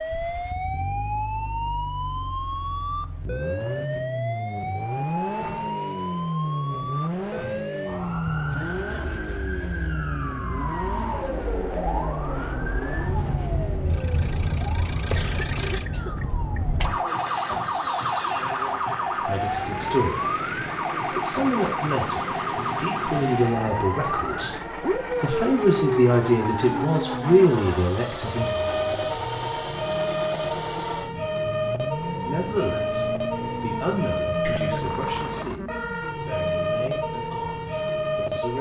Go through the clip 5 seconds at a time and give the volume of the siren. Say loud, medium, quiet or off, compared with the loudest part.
loud, medium, loud, loud, loud, loud, loud, loud.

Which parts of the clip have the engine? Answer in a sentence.
You can hear the engine from 0.0 to 35.6 s.